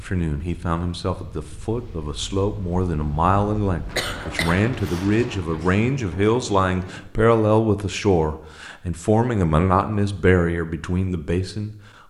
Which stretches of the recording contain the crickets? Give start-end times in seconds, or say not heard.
not heard.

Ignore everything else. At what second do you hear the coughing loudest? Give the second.
4 s.